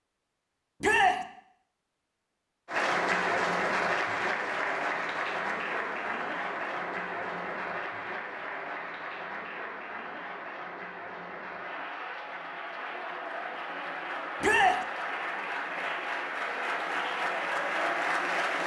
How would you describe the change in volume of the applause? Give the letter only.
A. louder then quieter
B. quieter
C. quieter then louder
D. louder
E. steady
C.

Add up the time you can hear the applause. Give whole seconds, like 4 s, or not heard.
16 s.